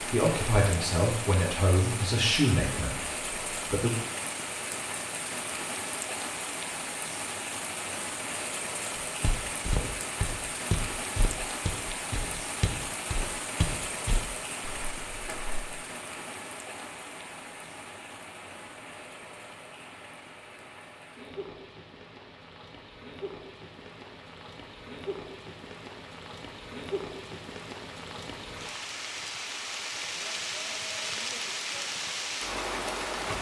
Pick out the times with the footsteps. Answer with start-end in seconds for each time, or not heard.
9.2-15.6.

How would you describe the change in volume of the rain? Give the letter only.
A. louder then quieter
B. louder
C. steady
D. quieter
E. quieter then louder
E.